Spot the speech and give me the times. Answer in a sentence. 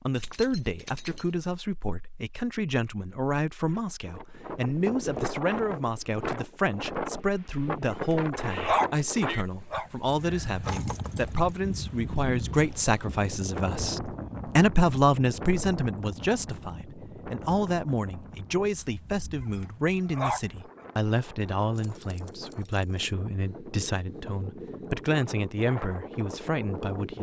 You can hear the speech from 0.0 to 27.1 s.